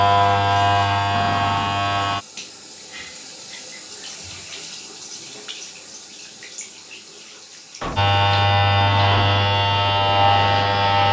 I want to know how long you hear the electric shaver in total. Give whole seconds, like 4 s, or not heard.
5 s.